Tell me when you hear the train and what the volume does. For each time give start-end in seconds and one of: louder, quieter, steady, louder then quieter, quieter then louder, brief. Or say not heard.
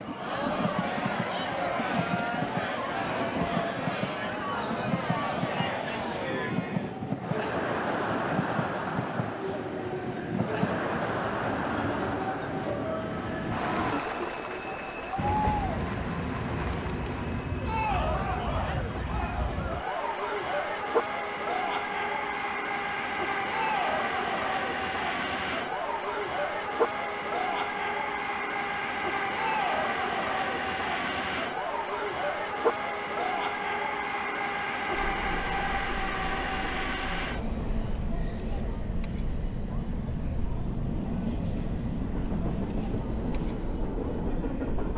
0.0-44.9 steady.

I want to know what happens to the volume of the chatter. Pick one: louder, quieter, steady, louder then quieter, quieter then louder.
quieter.